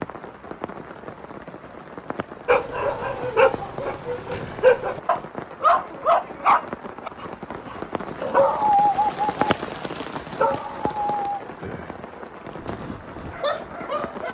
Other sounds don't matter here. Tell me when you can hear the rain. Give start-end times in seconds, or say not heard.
0.0-14.2.